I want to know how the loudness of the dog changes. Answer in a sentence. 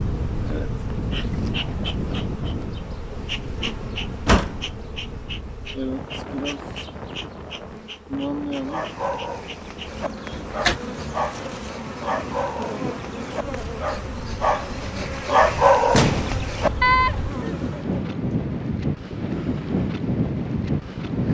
The volume of the dog goes up.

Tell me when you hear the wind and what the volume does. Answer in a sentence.
You can hear the wind from 0.0 to 21.2 s, getting quieter then louder.